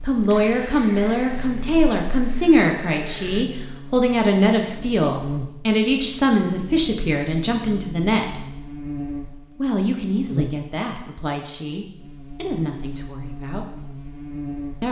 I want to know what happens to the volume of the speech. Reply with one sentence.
The volume of the speech goes down.